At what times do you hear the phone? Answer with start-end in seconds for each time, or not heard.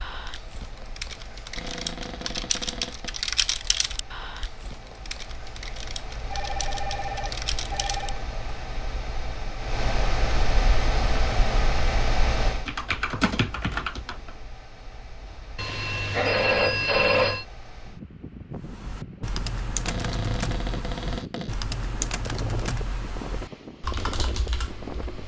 6.3-8.2, 15.6-17.4.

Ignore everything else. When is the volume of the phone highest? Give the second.
17 s.